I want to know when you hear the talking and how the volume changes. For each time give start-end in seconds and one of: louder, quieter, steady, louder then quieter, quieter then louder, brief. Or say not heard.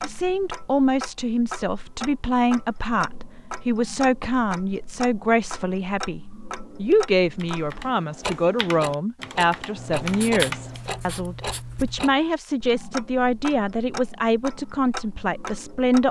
0.0-16.0 steady.